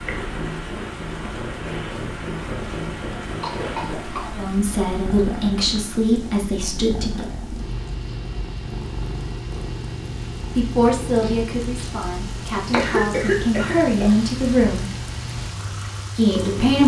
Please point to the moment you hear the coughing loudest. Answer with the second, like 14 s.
13 s.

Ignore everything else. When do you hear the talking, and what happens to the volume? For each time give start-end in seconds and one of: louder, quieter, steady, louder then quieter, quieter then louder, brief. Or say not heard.
4.3-7.2 brief
10.6-14.9 quieter then louder
16.1-16.8 brief.